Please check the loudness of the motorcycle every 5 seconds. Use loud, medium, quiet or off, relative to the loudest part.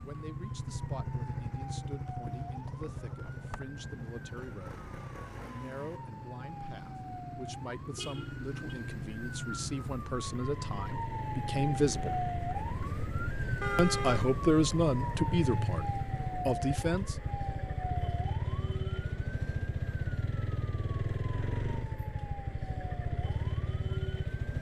loud, medium, loud, loud, loud.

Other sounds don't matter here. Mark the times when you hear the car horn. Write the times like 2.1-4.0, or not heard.
8.0-8.8, 13.6-14.3.